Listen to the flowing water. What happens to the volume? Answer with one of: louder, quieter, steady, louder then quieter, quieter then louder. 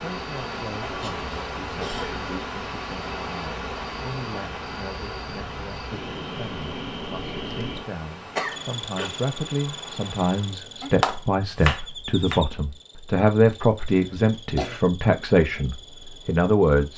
quieter.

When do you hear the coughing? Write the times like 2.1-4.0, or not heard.
0.9-2.2, 8.3-9.2, 13.5-14.8.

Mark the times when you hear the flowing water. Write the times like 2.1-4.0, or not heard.
0.0-10.6.